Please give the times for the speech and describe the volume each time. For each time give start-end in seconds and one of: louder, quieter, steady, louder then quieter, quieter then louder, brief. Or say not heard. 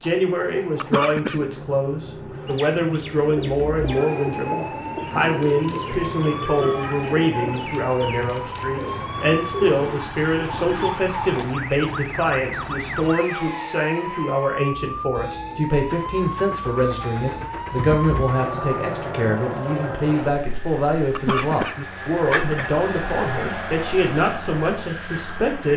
0.0-25.7 steady.